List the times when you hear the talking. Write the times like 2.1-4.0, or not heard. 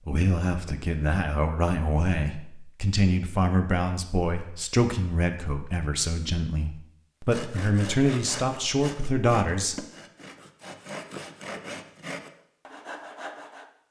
0.1-9.8.